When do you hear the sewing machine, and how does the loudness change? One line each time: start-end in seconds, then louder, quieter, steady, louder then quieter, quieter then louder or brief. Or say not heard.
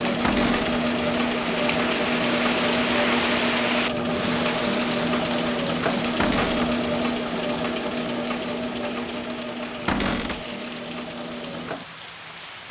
0.0-12.6 quieter.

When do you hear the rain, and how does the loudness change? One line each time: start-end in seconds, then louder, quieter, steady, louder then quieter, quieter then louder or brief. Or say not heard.
0.0-12.6 quieter.